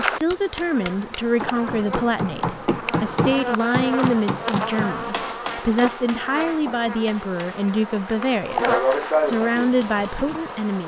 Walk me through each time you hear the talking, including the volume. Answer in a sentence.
You can hear the talking from 0.0 to 10.8 s, at a steady volume.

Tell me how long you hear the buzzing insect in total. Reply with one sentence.
The buzzing insect can be heard for 11 seconds in total.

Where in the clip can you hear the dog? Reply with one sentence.
You can't hear the dog here.